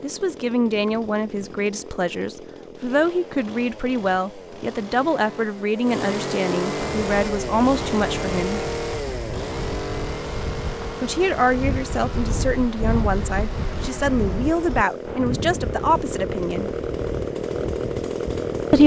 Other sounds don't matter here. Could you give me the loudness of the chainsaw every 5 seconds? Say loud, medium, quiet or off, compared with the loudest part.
medium, loud, medium, loud.